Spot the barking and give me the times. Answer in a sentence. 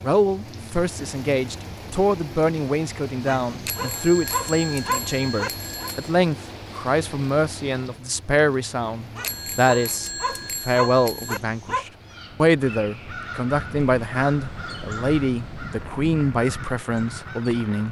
You can hear the barking from 3.2 to 5.7 s and from 9.2 to 11.8 s.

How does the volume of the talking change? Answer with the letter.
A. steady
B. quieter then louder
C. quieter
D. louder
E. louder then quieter
A.